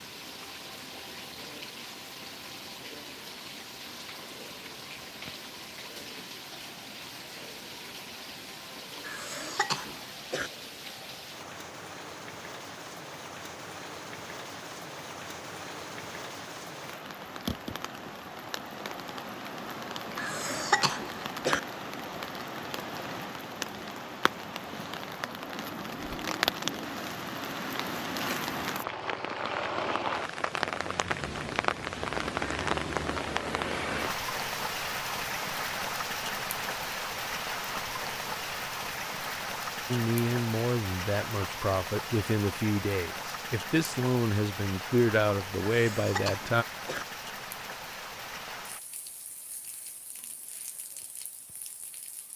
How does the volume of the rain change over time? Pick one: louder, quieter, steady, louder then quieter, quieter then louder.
louder then quieter.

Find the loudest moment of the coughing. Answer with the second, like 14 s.
21 s.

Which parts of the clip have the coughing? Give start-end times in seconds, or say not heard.
9.0-10.5, 20.1-21.6, 45.7-47.0.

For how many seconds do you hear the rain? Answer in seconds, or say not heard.
52 s.